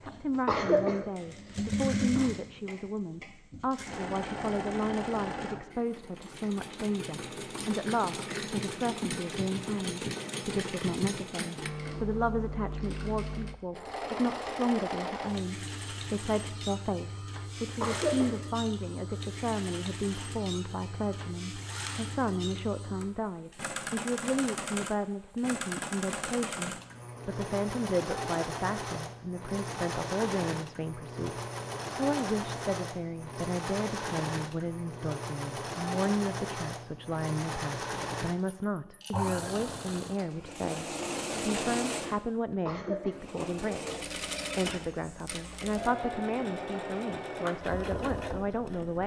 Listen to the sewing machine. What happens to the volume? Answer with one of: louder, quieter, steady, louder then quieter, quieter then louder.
steady.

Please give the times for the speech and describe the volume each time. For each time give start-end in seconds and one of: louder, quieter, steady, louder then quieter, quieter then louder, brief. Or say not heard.
0.0-49.0 steady.